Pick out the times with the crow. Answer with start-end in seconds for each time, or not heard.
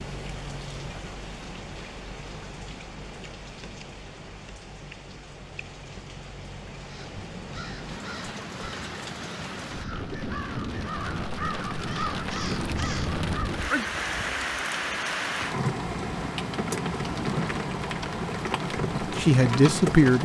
6.8-13.6.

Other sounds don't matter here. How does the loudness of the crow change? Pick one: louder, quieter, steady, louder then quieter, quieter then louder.
louder.